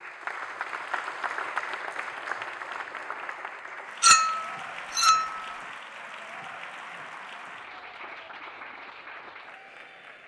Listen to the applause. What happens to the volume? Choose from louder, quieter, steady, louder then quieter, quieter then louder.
quieter.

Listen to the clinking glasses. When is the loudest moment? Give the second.
4 s.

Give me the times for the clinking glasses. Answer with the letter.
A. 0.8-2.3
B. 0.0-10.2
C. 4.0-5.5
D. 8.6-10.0
C.